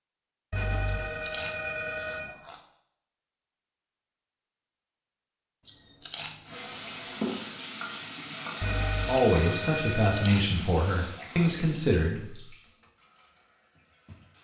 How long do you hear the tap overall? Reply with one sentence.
You can hear the tap for 8 seconds altogether.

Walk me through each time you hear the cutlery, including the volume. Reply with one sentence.
You can't hear the cutlery here.